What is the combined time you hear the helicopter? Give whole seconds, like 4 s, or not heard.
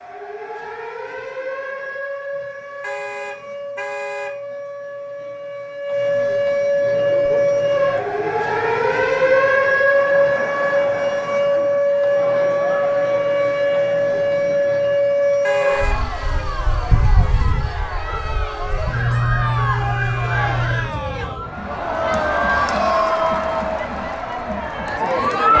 not heard.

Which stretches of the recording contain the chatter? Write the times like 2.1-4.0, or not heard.
6.8-25.5.